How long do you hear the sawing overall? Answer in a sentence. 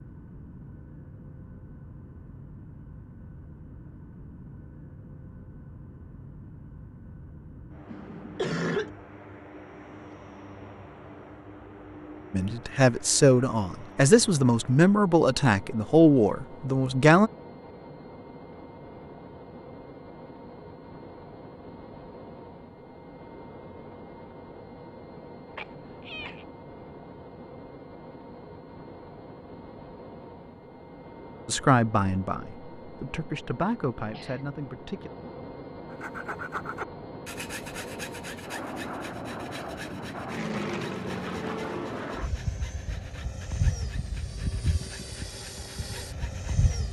You can hear the sawing for 11 seconds altogether.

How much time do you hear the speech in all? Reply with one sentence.
The speech can be heard for 9 seconds in total.